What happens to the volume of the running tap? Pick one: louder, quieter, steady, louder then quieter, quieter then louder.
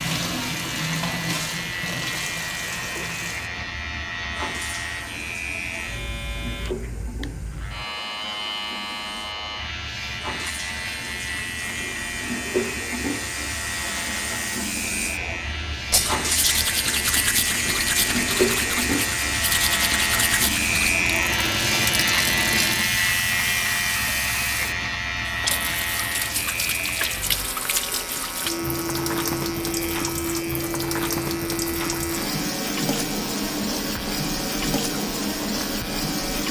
louder.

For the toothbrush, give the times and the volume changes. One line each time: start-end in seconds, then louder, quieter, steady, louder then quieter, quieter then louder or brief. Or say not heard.
15.9-20.9 steady.